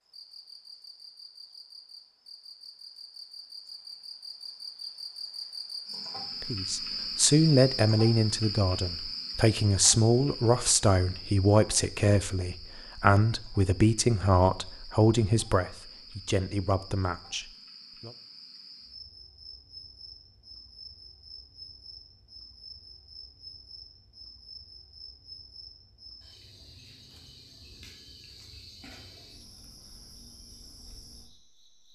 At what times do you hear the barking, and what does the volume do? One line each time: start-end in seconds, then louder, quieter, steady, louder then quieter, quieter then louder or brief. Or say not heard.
not heard.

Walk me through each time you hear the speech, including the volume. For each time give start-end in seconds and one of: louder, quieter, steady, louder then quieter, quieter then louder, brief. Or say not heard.
6.4-18.1 quieter.